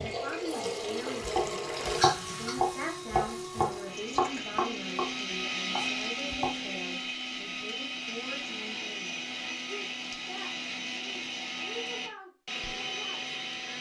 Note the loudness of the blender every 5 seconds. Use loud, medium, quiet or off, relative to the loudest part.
medium, loud, loud.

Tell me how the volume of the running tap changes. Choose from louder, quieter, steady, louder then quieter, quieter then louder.
quieter.